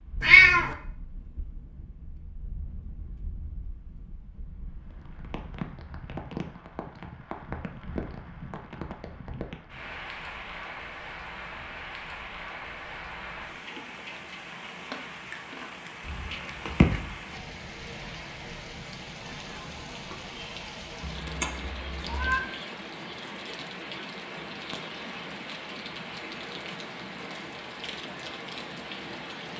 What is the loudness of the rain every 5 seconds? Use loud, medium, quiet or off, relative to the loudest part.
quiet, loud, loud, loud, loud, loud.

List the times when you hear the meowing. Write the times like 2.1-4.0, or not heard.
0.2-0.8, 16.1-17.1, 21.0-22.4.